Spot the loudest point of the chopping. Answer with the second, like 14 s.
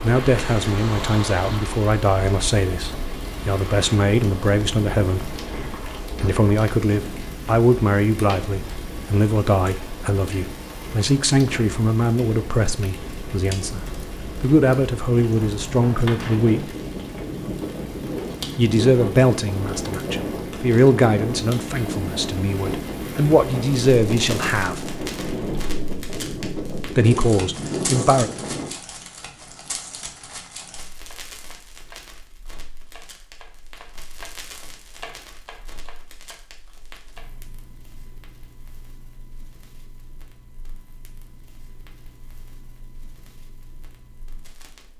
35 s.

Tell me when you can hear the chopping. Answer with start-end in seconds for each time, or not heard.
31.1-37.4.